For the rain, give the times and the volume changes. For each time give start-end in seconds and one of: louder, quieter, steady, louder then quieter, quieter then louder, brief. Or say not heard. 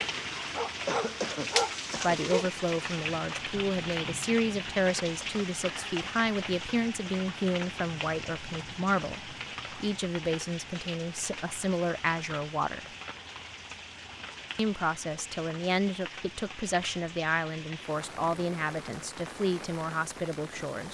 0.0-20.8 quieter.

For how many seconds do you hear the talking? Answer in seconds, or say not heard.
17 s.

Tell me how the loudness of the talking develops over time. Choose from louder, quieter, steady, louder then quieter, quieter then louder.
steady.